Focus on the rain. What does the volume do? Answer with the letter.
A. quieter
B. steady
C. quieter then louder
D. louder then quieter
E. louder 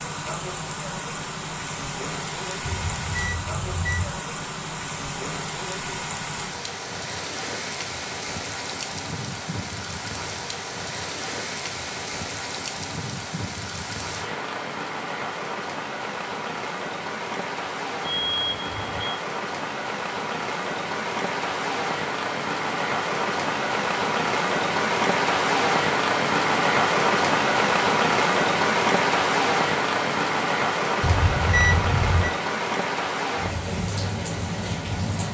E.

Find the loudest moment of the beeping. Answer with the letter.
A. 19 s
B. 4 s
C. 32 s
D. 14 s
C.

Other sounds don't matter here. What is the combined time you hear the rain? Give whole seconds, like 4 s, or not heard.
35 s.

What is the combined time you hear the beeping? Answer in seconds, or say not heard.
4 s.